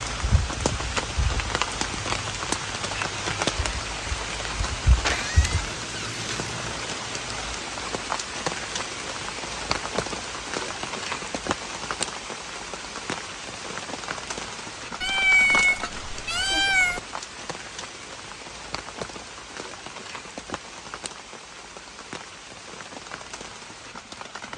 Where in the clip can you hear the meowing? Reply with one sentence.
You can hear the meowing from 5.0 to 6.8 s and from 15.0 to 17.0 s.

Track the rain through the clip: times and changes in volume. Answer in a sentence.
You can hear the rain from 0.0 to 24.5 s, getting quieter.